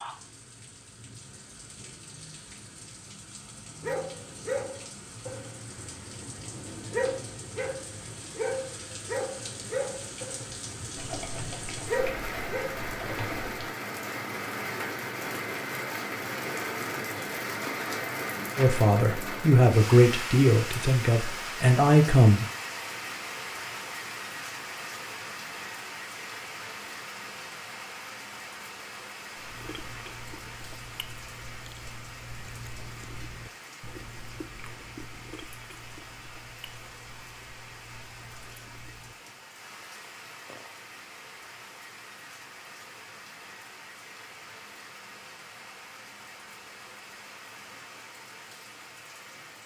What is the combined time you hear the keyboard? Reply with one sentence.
The keyboard can be heard for 3 seconds in total.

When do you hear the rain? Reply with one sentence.
The rain can be heard from 0.0 to 49.6 s.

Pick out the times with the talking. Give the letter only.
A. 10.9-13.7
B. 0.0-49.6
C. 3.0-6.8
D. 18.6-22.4
D.